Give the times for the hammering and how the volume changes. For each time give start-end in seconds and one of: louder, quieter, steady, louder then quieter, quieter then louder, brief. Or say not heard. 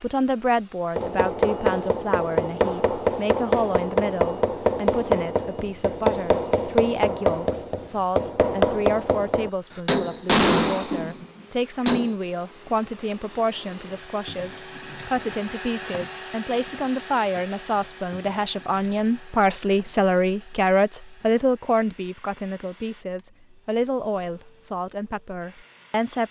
0.9-12.2 steady.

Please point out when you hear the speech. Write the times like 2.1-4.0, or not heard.
0.0-26.2.